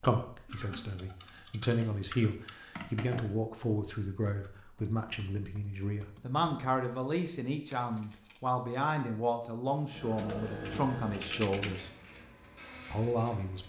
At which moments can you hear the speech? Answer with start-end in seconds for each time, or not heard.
0.0-11.9, 12.9-13.6.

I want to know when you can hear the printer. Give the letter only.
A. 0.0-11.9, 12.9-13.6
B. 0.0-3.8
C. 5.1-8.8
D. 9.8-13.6
D.